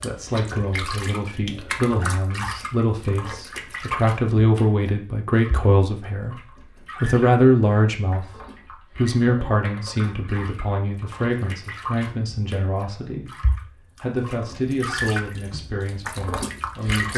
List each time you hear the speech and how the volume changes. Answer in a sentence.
You can hear the speech from 0.0 to 17.1 s, getting louder then quieter.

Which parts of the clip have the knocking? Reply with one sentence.
The knocking can't be heard in this clip.